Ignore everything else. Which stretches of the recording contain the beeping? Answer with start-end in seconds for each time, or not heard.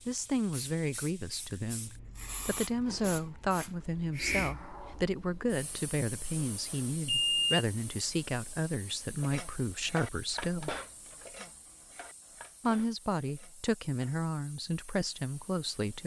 7.0-7.6.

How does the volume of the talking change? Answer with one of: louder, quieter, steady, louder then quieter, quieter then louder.
steady.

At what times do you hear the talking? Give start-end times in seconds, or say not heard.
0.1-10.8, 12.6-16.0.